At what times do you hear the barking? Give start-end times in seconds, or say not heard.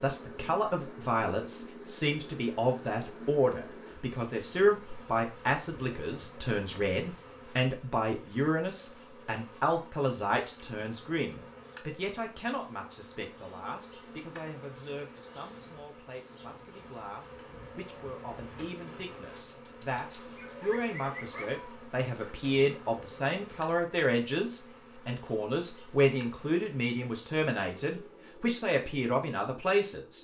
19.6-21.4.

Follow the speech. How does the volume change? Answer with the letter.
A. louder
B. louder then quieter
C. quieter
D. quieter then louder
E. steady
D.